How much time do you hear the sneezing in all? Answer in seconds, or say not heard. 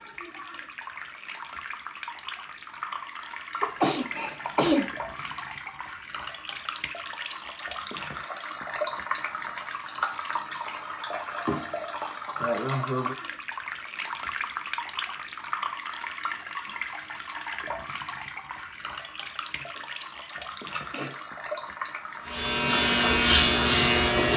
3 s.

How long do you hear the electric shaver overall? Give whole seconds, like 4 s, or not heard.
2 s.